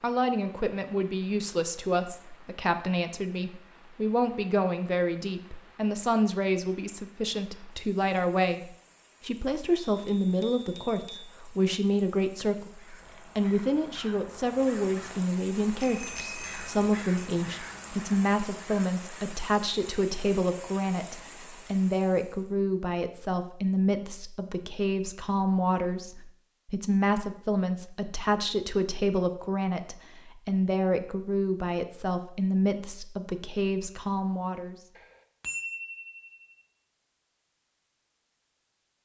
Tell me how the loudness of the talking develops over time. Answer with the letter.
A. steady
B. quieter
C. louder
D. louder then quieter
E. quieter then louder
A.